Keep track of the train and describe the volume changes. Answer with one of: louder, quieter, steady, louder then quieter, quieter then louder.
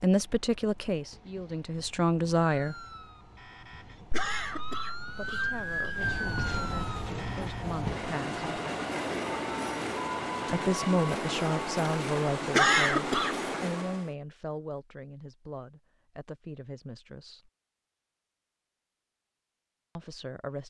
louder.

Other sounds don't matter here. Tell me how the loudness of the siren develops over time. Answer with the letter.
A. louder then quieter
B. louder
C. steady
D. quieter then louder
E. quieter
A.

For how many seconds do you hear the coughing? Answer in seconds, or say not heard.
3 s.